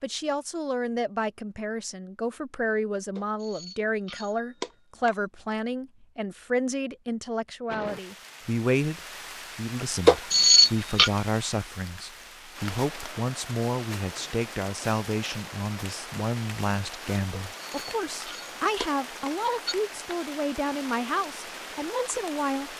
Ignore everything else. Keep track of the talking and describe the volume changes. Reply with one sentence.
The loudness of the talking stays about the same.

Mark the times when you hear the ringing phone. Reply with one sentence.
The ringing phone can be heard from 3.1 to 5.2 s, from 10.1 to 11.1 s and from 17.3 to 19.8 s.